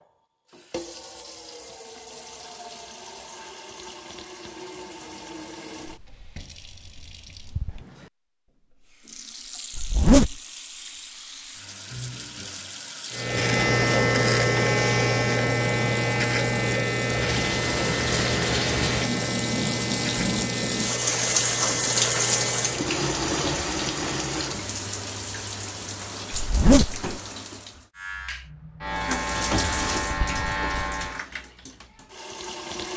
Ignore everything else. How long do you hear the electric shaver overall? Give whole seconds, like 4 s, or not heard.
13 s.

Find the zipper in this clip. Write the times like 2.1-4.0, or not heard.
9.8-10.3, 26.3-27.0.